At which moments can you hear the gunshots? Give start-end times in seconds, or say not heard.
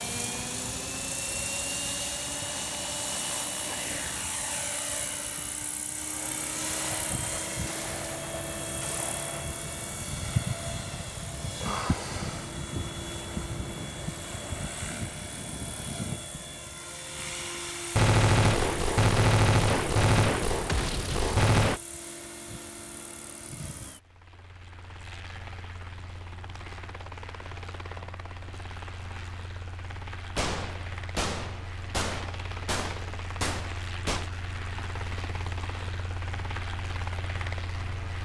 6.7-9.6, 17.9-21.8, 30.4-34.2.